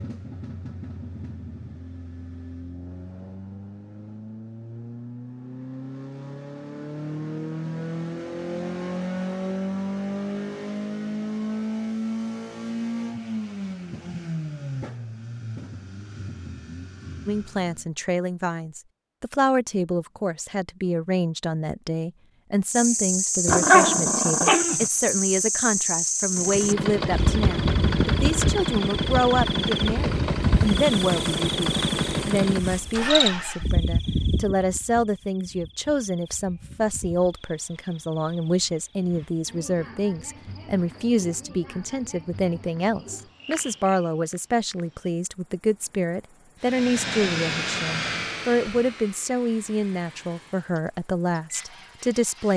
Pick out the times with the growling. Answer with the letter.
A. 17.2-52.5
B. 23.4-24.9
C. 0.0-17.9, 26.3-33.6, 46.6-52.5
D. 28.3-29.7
B.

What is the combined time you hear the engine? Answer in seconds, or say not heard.
31 s.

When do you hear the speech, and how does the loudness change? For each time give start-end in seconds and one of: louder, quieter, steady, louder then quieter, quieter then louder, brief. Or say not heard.
17.2-52.5 steady.